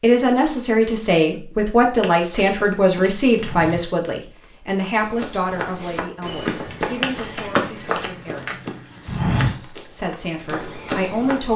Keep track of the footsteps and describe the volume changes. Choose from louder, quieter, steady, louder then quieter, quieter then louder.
louder then quieter.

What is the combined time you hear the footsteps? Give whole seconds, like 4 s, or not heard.
9 s.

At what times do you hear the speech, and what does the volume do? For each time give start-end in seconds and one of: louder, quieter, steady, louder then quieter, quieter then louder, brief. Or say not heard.
0.0-8.6 quieter
9.8-11.5 brief.